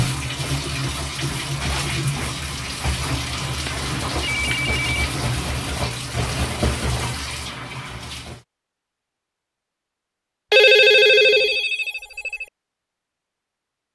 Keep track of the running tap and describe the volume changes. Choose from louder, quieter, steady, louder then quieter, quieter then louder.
steady.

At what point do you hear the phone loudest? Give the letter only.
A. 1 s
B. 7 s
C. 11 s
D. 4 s
C.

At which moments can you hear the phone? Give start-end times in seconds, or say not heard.
3.5-5.2, 10.5-12.4.